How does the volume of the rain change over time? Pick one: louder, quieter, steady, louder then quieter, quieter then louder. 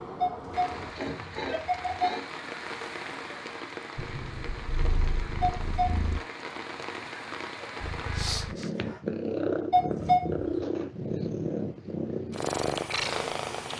steady.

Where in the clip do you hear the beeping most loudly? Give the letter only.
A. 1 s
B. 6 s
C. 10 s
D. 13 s
C.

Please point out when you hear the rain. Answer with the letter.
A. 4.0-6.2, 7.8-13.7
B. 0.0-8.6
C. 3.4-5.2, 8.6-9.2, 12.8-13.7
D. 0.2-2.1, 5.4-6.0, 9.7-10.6
B.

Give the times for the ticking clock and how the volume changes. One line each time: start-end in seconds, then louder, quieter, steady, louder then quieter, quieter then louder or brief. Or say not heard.
not heard.